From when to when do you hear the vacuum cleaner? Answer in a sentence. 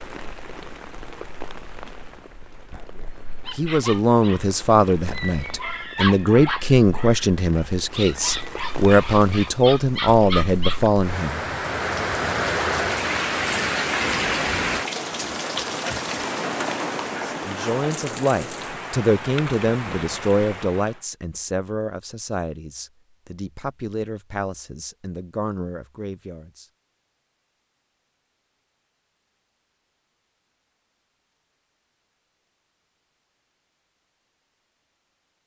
You can't hear the vacuum cleaner here.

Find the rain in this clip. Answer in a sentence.
You can hear the rain from 0.0 to 21.0 s.